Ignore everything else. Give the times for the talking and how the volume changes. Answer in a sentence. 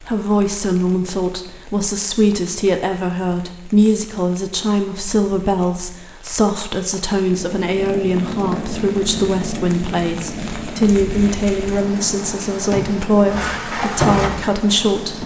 The talking can be heard from 0.0 to 15.2 s, at a steady volume.